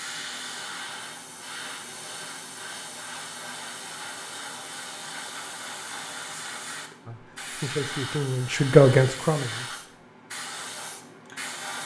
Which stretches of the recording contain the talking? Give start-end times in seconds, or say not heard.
7.0-9.8.